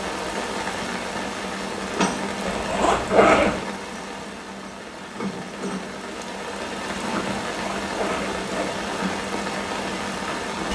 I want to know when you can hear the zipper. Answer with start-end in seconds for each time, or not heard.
2.5-3.6, 7.5-8.8.